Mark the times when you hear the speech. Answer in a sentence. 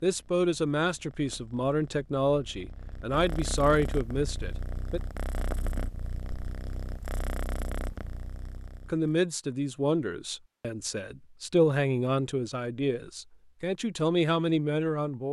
The speech can be heard from 0.0 to 5.0 s and from 8.9 to 15.2 s.